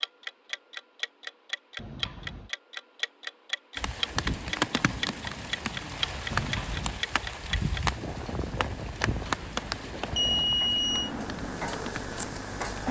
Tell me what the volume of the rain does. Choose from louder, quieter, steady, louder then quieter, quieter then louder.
quieter.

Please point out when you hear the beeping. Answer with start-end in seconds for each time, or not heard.
1.8-2.5, 6.3-7.0, 9.1-11.1.